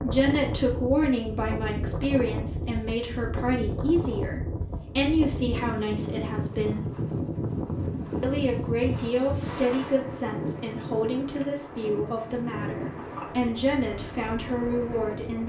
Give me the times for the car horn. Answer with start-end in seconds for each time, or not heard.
not heard.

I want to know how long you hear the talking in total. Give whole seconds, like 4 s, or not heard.
14 s.